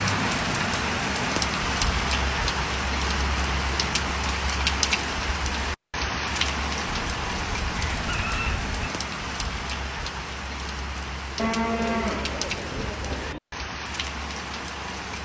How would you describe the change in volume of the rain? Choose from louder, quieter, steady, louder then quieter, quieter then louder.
quieter.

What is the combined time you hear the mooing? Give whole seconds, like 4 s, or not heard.
2 s.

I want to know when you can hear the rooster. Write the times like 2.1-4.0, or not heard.
6.8-8.9.